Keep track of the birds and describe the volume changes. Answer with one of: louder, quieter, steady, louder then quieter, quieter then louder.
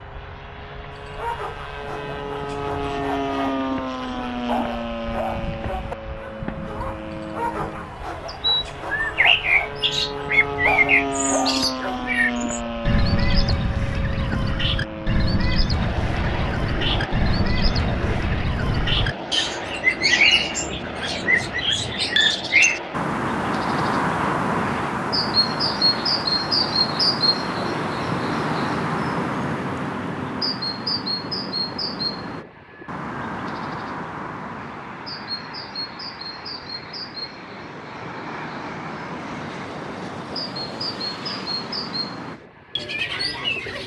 quieter.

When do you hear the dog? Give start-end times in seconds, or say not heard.
0.9-12.1.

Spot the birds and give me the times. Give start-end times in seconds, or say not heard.
8.2-43.8.